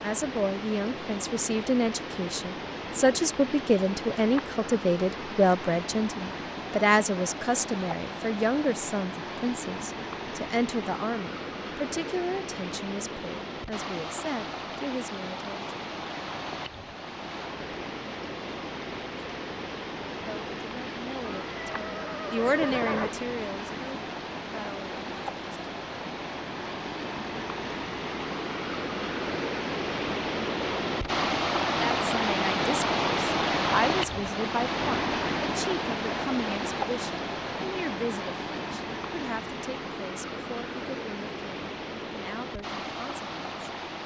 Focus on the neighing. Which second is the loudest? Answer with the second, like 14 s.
23 s.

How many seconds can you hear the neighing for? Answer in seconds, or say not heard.
2 s.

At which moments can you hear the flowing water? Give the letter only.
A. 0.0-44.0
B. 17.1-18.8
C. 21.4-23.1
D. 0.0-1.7
A.